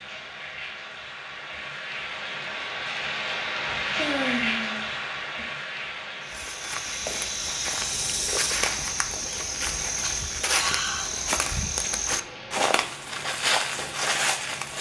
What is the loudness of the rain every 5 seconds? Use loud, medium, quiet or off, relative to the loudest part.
loud, medium, medium.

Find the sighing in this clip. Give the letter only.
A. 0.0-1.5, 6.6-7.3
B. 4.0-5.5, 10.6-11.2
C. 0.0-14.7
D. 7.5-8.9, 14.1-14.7
B.